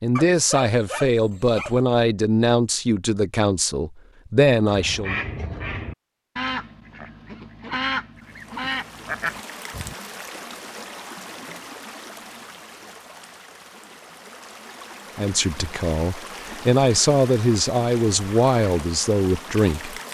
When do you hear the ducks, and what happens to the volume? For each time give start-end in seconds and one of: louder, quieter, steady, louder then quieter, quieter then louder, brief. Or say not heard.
4.7-9.9 quieter then louder.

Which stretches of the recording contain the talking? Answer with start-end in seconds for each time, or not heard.
0.0-5.2, 15.2-20.0.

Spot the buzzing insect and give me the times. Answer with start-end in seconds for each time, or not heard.
not heard.